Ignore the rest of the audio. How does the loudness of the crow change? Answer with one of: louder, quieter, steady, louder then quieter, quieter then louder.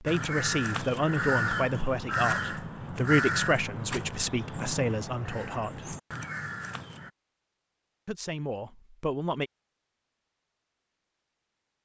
quieter.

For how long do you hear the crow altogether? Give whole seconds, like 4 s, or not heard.
7 s.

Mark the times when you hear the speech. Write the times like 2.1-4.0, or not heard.
0.0-6.0, 8.1-9.5.